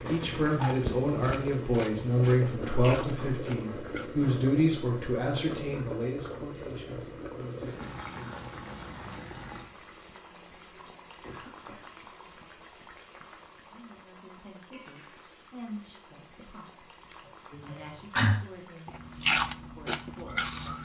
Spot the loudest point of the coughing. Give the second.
18 s.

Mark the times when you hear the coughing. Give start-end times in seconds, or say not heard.
2.6-4.4, 11.2-11.9, 17.1-18.4.